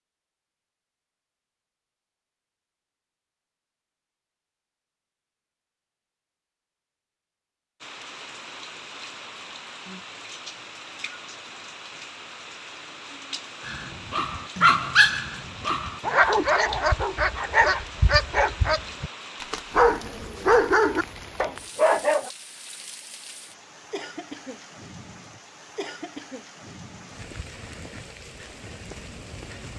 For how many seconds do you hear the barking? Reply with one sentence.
The barking can be heard for 9 seconds in total.